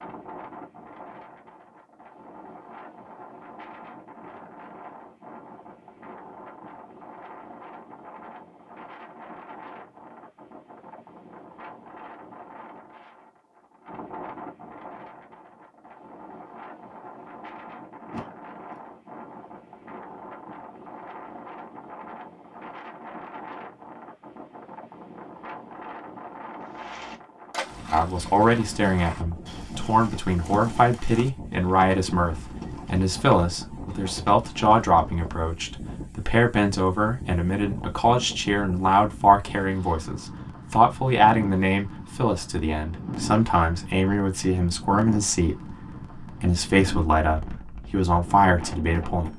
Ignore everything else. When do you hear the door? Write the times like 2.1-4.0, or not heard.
18.1-18.8.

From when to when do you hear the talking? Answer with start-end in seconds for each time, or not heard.
27.9-49.3.